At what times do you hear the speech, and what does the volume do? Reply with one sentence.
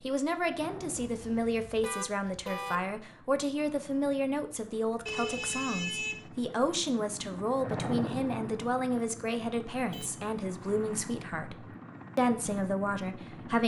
You can hear the speech from 0.0 to 13.6 s, at a steady volume.